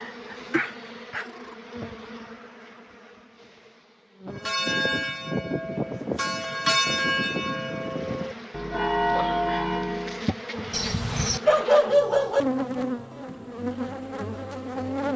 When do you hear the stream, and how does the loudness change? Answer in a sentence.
You can't hear the stream here.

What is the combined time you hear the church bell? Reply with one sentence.
The church bell can be heard for 6 seconds in total.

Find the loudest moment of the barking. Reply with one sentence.
The volume of the barking peaks at 12 seconds.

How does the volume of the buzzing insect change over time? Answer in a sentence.
The loudness of the buzzing insect goes down, then up.